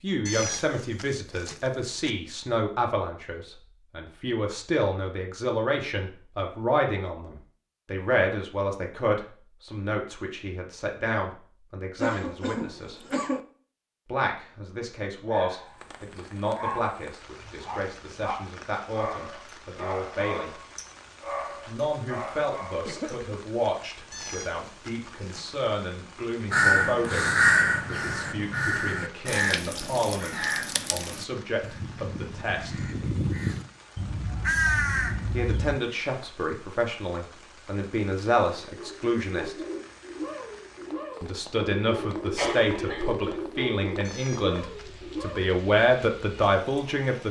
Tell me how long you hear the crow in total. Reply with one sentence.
You can hear the crow for 9 seconds altogether.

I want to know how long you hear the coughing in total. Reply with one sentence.
You can hear the coughing for 3 seconds altogether.